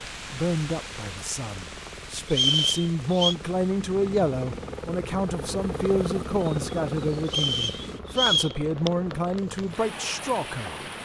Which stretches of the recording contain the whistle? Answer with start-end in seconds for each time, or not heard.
2.3-3.4, 7.2-8.6.